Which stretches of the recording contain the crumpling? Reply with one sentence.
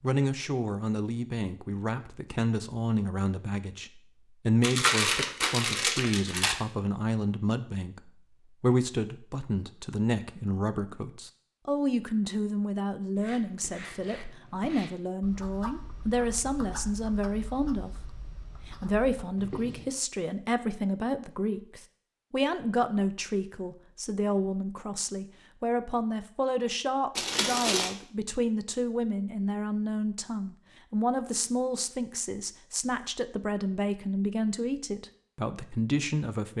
The crumpling can be heard from 4.6 to 6.5 s and from 27.1 to 27.9 s.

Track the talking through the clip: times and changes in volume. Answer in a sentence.
The talking can be heard from 0.0 to 17.9 s, at a steady volume; and from 18.6 to 36.5 s, at a steady volume.